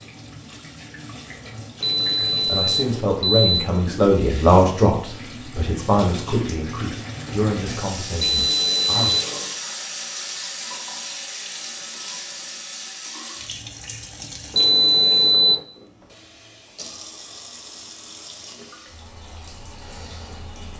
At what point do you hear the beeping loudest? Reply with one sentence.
The volume of the beeping peaks at 15 seconds.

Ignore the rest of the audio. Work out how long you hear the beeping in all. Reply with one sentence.
The beeping can be heard for 4 seconds in total.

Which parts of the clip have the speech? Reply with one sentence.
You can hear the speech from 2.5 to 9.2 s.